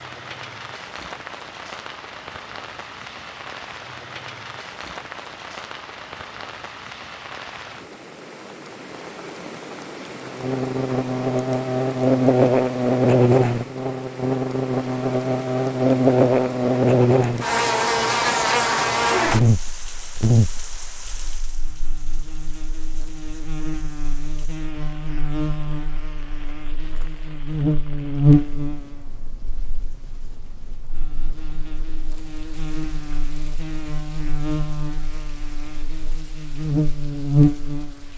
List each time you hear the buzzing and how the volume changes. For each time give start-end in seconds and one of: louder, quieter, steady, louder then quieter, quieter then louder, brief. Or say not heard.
10.2-38.1 quieter then louder.